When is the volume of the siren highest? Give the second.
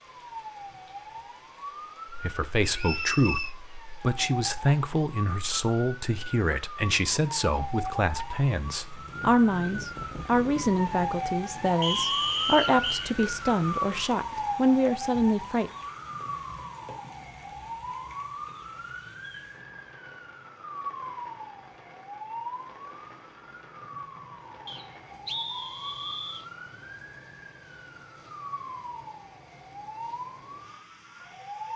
12 s.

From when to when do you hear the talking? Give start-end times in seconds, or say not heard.
2.1-15.7.